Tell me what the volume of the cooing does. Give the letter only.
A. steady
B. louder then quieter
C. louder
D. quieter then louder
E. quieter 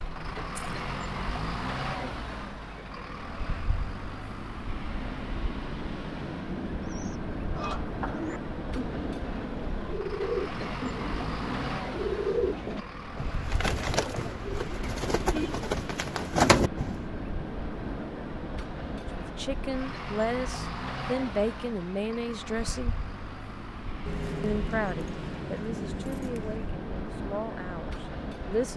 C.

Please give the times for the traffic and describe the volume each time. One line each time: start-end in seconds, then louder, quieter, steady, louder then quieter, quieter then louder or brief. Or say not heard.
0.0-28.7 steady.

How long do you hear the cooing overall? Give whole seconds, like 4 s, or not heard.
10 s.